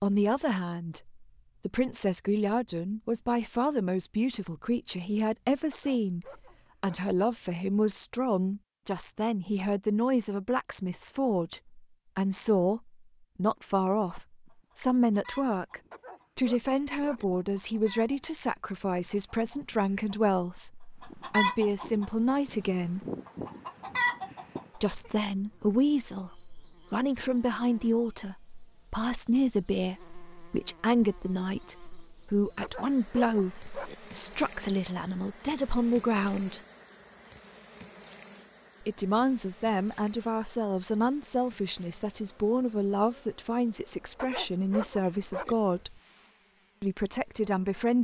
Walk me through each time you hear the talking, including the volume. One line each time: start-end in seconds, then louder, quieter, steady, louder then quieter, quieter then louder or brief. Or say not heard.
0.0-23.1 steady
24.8-36.6 steady
38.8-46.0 steady
46.8-47.9 brief.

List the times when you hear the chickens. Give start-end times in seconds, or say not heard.
14.1-24.6.